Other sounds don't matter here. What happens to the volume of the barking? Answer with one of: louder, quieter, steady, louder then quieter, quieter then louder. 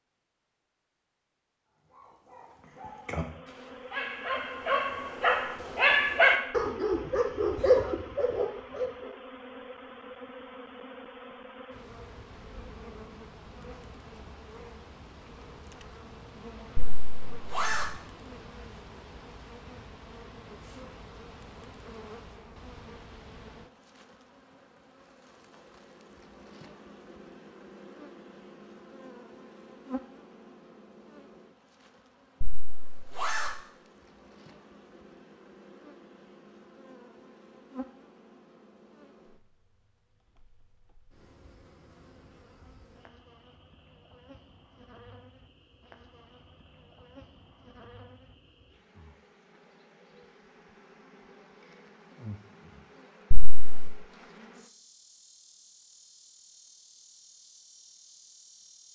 louder.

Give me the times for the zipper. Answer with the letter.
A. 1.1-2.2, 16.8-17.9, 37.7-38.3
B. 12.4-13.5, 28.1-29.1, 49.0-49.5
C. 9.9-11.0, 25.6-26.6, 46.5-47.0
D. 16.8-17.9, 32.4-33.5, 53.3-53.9
D.